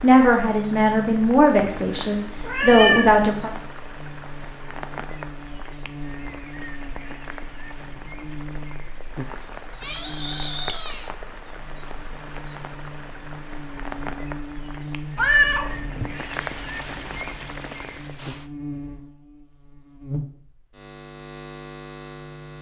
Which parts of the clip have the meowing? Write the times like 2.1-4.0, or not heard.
1.6-3.2, 9.8-11.1, 15.2-16.1.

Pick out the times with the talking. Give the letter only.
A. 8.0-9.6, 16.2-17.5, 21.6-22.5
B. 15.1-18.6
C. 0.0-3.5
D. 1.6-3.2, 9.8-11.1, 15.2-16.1
C.